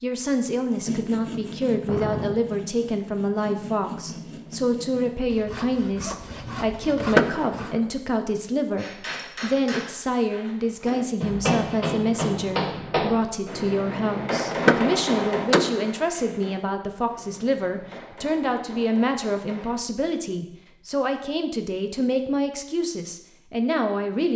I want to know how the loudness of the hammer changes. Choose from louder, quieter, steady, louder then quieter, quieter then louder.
louder then quieter.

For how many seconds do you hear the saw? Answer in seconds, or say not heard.
7 s.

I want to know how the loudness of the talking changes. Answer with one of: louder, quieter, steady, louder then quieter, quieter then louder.
steady.